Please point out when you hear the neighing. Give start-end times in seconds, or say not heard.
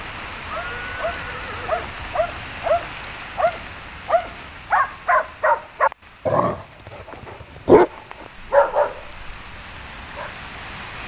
0.5-1.9.